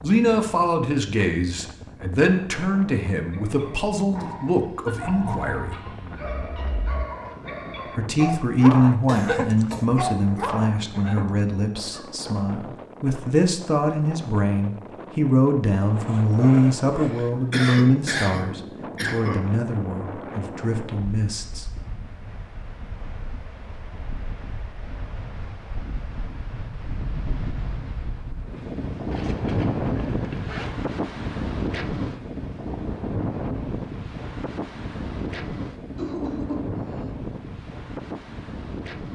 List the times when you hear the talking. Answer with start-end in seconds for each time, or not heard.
0.0-5.8, 8.0-21.6.